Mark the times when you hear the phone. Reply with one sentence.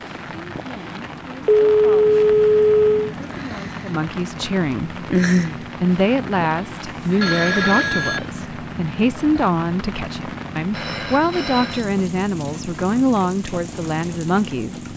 The phone can be heard from 1.4 to 3.1 s, from 7.2 to 8.2 s and from 10.7 to 11.8 s.